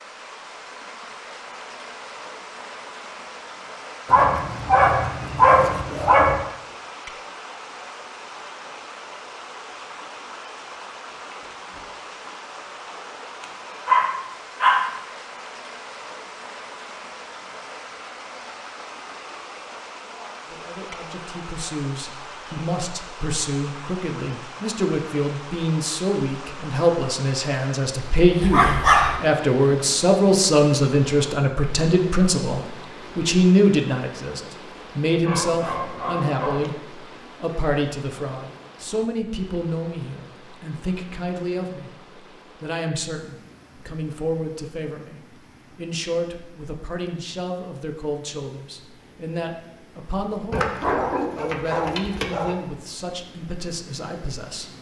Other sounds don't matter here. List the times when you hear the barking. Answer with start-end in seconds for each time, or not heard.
4.0-6.4, 13.4-14.9, 28.4-29.1, 35.2-36.8, 50.5-52.5.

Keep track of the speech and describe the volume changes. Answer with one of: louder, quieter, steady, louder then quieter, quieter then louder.
louder then quieter.